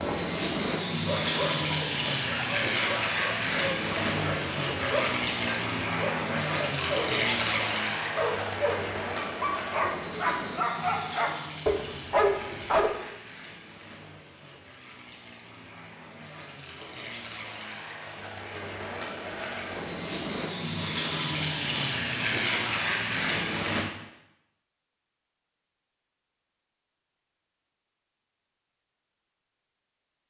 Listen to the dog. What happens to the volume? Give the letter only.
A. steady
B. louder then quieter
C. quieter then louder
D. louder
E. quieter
D.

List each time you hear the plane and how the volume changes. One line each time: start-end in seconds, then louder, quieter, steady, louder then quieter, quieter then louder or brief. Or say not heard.
0.0-23.9 quieter then louder.